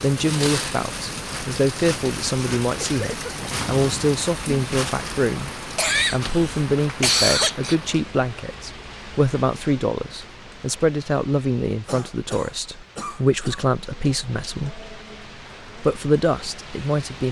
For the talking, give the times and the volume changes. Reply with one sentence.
You can hear the talking from 0.0 to 14.8 s, at a steady volume; and briefly from 15.8 to 17.2 s.